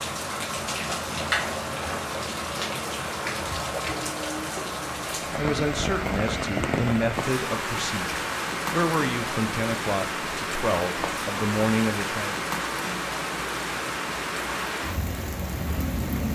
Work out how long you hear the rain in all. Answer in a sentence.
The rain can be heard for 16 seconds in total.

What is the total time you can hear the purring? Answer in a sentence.
The purring can't be heard in this clip.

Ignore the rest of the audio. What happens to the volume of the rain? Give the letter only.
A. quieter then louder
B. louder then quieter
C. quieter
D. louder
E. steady
E.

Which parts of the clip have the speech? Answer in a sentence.
The speech can be heard from 5.3 to 12.3 s.